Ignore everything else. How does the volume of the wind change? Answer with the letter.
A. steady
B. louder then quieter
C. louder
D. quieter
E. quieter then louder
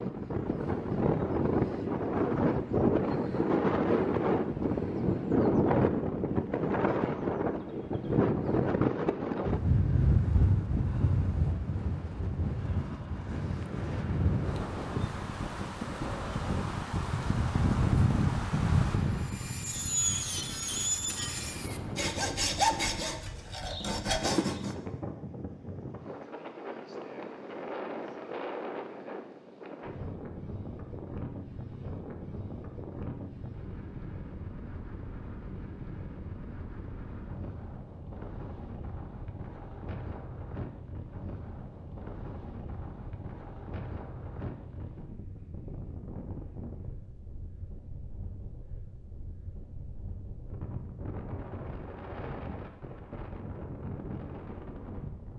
D.